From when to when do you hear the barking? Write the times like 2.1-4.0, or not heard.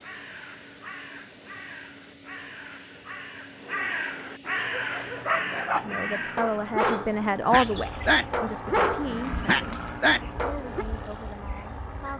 4.6-10.8.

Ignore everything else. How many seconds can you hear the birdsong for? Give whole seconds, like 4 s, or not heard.
12 s.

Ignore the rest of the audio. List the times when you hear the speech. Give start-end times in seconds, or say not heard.
5.7-12.1.